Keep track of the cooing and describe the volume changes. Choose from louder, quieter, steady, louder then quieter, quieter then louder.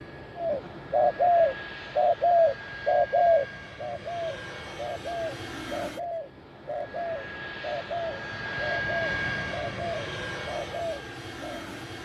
quieter.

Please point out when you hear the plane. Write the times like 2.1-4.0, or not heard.
0.0-11.9.